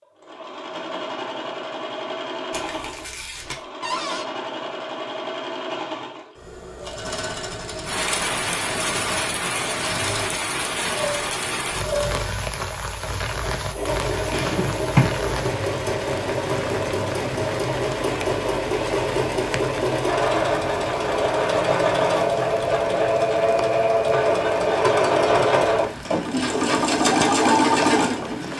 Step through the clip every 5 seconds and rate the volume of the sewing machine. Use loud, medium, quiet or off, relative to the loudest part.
quiet, quiet, medium, medium, loud, loud.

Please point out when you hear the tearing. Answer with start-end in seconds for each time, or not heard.
2.5-3.6.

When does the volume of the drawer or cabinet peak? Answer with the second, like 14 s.
15 s.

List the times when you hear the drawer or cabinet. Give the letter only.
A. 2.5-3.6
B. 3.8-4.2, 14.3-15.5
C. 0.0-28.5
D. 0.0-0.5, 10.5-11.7
B.